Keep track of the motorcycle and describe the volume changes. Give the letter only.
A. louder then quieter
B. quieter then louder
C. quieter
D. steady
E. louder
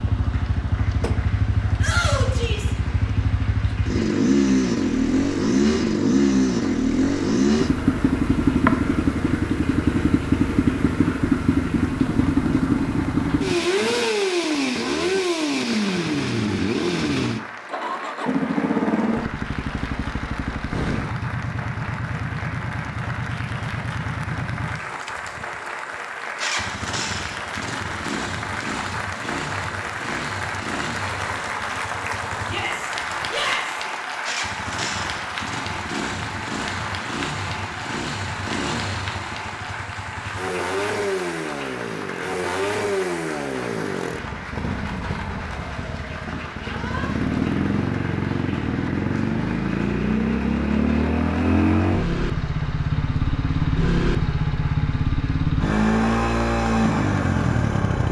B.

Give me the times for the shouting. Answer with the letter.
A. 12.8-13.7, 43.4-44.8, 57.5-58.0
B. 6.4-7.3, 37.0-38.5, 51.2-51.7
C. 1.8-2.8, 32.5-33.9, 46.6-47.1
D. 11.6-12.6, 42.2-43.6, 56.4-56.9
C.